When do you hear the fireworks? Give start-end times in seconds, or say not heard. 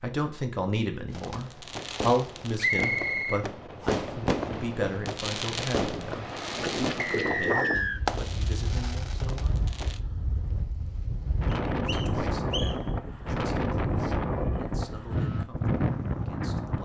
1.1-10.0.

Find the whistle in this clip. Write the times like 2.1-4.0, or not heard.
2.6-4.0, 7.0-8.0, 11.5-12.8.